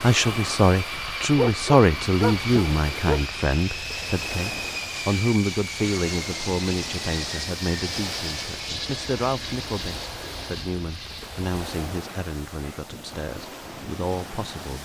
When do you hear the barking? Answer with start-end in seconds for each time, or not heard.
1.4-3.2.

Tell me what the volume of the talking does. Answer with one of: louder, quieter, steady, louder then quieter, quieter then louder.
quieter.